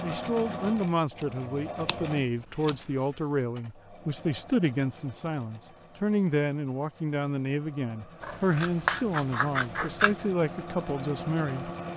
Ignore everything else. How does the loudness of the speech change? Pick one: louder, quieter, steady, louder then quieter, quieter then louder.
steady.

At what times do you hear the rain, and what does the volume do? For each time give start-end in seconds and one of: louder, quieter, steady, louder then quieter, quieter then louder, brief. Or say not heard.
not heard.